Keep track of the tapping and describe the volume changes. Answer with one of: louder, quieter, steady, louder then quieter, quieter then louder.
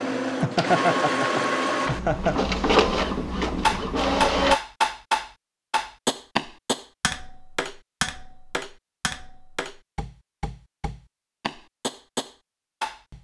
quieter then louder.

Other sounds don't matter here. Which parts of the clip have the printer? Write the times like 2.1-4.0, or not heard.
0.0-4.6.